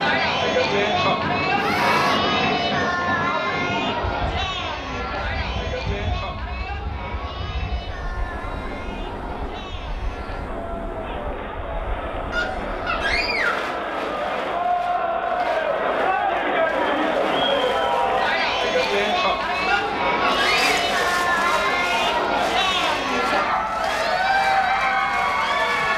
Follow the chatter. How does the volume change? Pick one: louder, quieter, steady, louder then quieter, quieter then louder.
quieter then louder.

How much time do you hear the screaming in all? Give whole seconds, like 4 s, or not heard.
3 s.